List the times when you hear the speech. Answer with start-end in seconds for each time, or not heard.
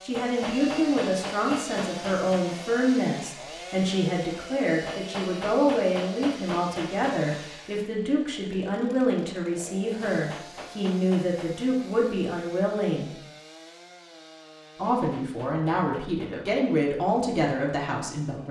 0.0-13.1, 14.8-18.4.